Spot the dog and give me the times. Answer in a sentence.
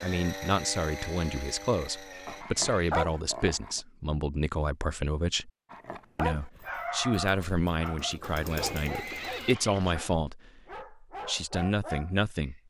You can hear the dog from 2.2 to 3.8 s and from 5.7 to 12.5 s.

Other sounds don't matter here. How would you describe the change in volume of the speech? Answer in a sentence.
The loudness of the speech stays about the same.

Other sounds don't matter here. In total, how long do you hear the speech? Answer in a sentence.
The speech can be heard for 12 seconds in total.